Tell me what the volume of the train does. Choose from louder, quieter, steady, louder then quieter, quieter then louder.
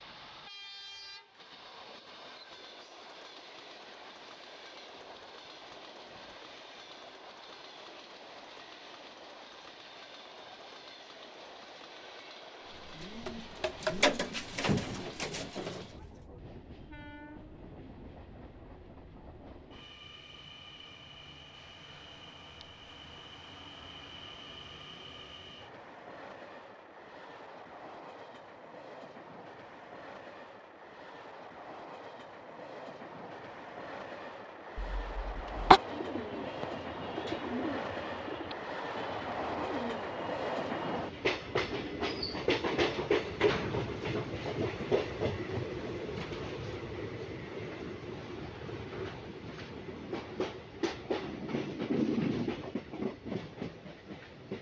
louder.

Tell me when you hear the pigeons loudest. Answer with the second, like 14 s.
14 s.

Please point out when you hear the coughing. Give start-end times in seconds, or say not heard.
34.8-35.8.